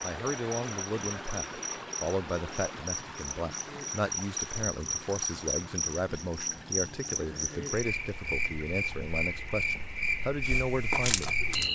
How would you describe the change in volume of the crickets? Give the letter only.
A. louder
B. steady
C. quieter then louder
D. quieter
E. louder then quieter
A.